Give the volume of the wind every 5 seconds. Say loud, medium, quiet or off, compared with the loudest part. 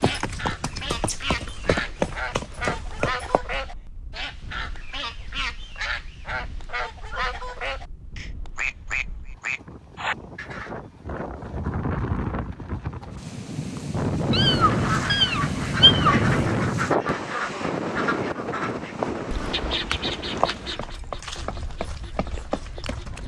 quiet, quiet, loud, loud, quiet.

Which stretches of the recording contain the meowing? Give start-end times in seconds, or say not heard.
14.3-16.3.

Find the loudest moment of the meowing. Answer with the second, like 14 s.
16 s.